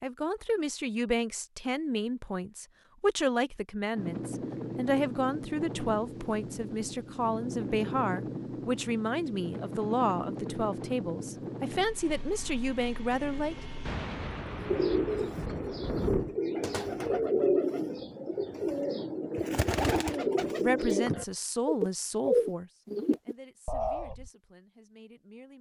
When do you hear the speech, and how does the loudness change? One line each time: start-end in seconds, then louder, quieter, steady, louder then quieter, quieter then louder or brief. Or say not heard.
0.0-13.6 steady
20.6-25.5 quieter.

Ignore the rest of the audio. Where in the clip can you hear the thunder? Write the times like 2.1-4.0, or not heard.
13.8-16.4.